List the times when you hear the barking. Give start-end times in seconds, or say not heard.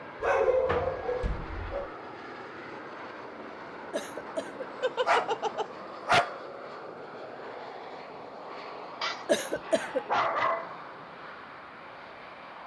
0.2-1.9, 4.8-6.3, 9.0-10.8.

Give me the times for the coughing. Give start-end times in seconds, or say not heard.
3.9-4.7, 9.2-10.1.